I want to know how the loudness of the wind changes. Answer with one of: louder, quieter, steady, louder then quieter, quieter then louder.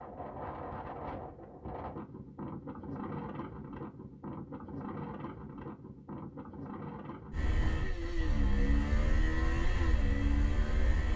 steady.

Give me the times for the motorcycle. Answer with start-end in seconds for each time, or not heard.
7.3-11.1.